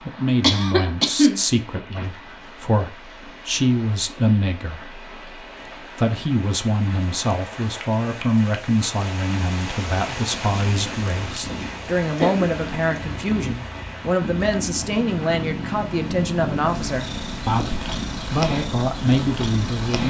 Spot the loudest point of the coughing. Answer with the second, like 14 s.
1 s.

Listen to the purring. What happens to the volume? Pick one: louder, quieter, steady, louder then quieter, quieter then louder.
louder.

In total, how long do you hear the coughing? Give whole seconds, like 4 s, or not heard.
2 s.